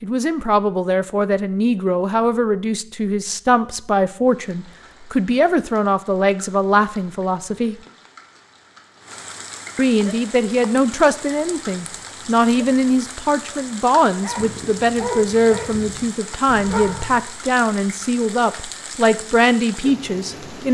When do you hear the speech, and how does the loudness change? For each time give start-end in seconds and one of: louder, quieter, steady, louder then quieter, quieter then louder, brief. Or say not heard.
0.0-7.8 steady
9.8-20.7 steady.